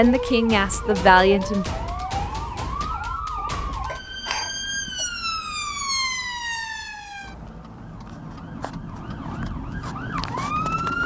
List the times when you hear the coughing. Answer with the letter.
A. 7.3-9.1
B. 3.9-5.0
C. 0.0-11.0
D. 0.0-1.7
B.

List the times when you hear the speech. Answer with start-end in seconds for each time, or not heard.
0.0-1.7.